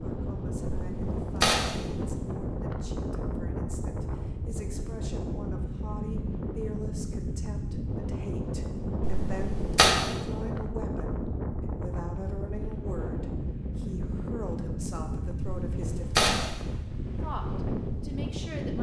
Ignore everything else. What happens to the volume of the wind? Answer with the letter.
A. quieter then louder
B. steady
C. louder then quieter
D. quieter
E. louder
B.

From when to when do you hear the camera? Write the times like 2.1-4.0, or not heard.
0.7-2.4, 9.0-9.9, 15.4-16.8.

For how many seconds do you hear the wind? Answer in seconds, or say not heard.
19 s.